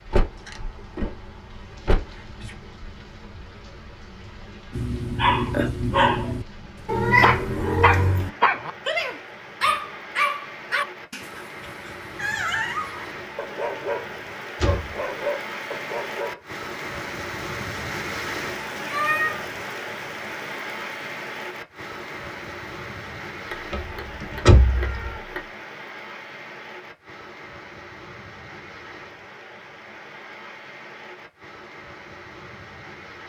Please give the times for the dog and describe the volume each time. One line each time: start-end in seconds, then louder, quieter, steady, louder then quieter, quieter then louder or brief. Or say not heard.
4.7-16.4 quieter.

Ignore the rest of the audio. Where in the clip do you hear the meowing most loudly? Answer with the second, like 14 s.
7 s.